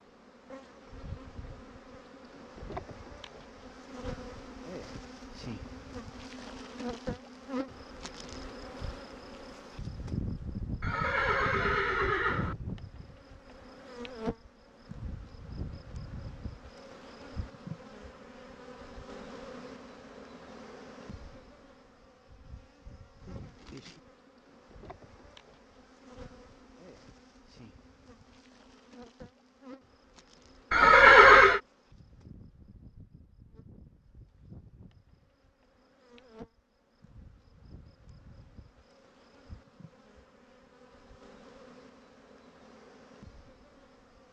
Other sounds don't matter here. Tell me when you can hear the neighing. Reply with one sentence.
The neighing can be heard from 10.8 to 12.6 s and from 30.7 to 31.6 s.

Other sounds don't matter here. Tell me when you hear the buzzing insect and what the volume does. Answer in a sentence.
You can hear the buzzing insect from 0.0 to 44.2 s, getting quieter.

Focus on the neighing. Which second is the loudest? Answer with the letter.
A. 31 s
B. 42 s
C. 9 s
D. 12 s
A.